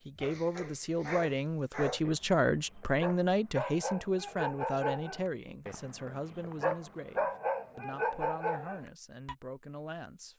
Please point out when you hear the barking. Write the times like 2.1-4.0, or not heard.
0.1-9.3.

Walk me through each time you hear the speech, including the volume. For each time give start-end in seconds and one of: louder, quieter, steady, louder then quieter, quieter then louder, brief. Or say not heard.
0.1-10.3 quieter.